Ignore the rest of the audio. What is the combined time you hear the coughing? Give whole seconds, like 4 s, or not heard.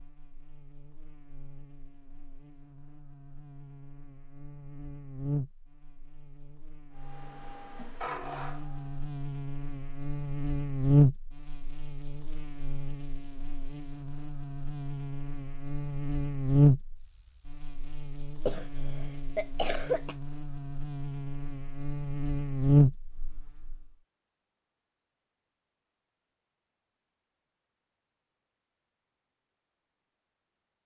2 s.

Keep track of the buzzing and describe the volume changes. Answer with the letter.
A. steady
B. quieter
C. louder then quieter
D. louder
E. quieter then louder
D.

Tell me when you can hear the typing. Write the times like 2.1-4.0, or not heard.
not heard.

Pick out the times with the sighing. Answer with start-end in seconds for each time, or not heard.
not heard.